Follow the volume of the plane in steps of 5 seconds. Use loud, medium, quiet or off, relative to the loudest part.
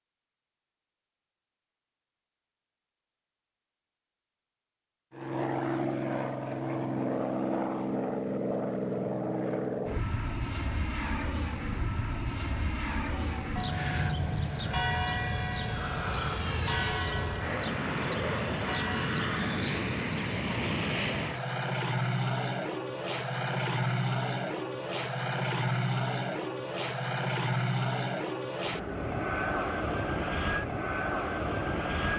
off, loud, loud, loud, loud, loud, loud.